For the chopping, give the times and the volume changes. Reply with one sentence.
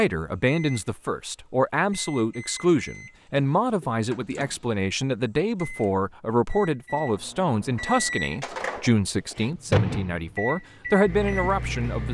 The chopping can't be heard in this clip.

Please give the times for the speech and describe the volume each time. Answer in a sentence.
The speech can be heard from 0.0 to 12.0 s, at a steady volume.